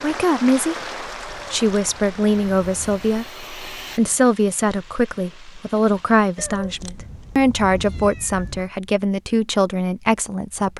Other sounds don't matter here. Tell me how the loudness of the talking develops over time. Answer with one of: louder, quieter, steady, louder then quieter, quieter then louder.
steady.